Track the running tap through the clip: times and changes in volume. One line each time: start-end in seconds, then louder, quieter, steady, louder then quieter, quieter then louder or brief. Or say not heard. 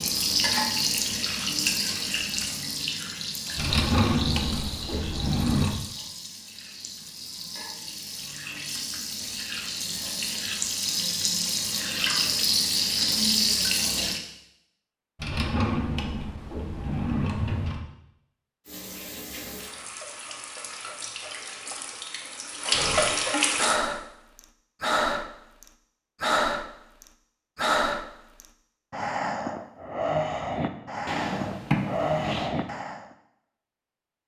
0.0-14.2 quieter then louder
18.6-23.8 louder.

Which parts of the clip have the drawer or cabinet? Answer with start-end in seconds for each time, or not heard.
3.5-5.8, 15.2-17.8, 31.1-32.5.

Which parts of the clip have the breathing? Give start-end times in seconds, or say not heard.
22.7-33.0.